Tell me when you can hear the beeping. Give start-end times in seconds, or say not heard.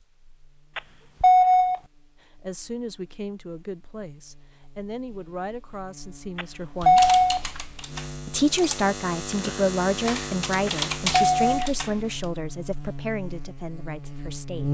0.8-1.8, 6.3-7.4, 10.7-11.4.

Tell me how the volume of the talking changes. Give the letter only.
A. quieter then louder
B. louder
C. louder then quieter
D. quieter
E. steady
C.